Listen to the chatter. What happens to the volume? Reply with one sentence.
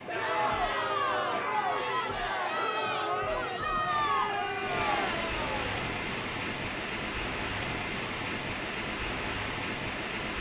The loudness of the chatter stays about the same.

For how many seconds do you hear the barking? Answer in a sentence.
You can't hear the barking here.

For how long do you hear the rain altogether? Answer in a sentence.
You can hear the rain for 10 seconds altogether.